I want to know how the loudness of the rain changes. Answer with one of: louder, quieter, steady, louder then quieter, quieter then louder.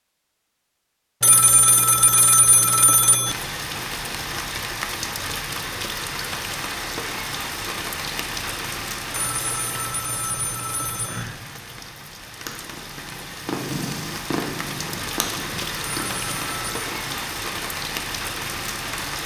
quieter then louder.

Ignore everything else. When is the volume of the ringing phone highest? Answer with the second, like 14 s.
2 s.